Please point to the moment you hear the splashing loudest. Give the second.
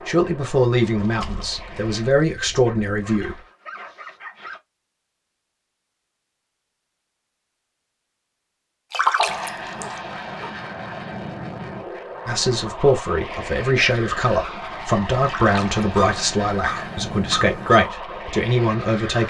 9 s.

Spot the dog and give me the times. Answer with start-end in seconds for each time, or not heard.
2.6-4.6, 9.2-10.6, 15.9-17.9.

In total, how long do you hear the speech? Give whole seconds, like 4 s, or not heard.
10 s.